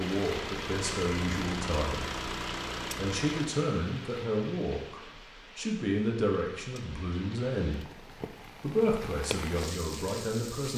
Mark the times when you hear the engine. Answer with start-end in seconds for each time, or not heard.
0.0-3.5.